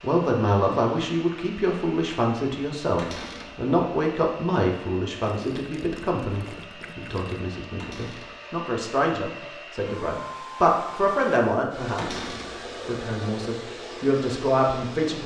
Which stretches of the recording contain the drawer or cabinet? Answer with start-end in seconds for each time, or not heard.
3.0-3.5, 7.8-8.3, 11.9-12.6.